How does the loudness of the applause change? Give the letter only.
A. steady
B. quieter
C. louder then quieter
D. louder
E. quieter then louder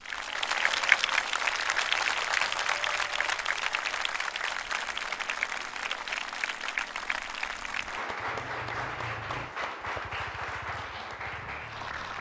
B.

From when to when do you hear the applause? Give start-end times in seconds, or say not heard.
0.0-12.1.